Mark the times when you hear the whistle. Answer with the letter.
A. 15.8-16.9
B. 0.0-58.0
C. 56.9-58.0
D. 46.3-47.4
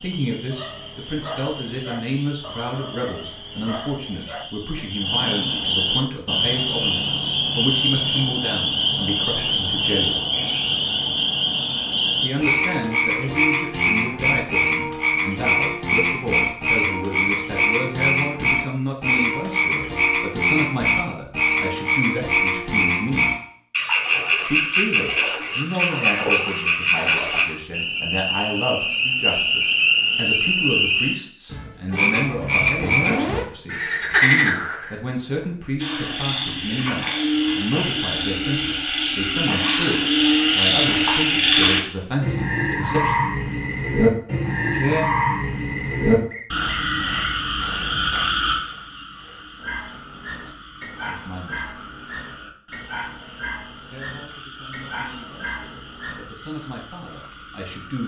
D.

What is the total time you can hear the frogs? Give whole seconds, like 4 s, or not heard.
58 s.